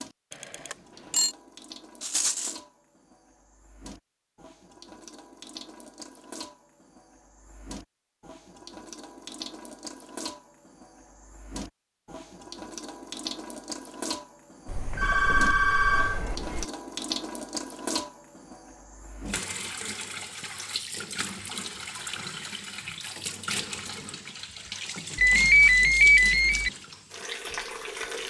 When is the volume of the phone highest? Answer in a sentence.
The loudest moment of the phone is at 26 seconds.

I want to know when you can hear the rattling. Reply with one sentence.
The rattling can be heard from 2.0 to 2.6 s.